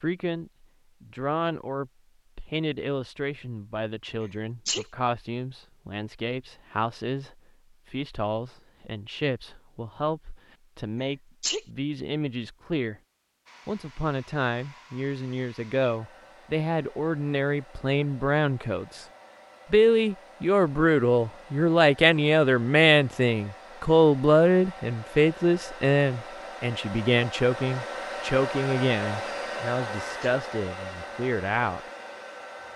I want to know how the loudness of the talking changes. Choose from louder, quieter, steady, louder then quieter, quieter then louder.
louder then quieter.